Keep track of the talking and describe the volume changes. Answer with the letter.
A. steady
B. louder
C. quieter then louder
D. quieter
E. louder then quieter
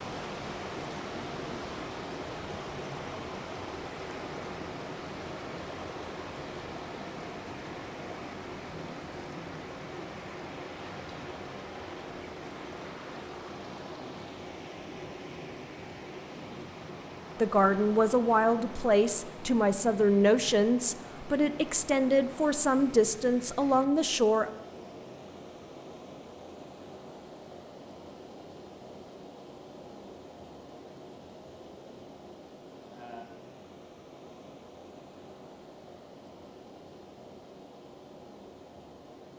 A.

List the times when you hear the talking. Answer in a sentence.
You can hear the talking from 17.4 to 24.5 s.